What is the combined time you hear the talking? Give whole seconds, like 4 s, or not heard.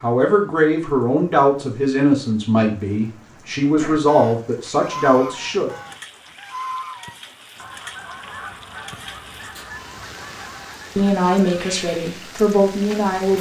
8 s.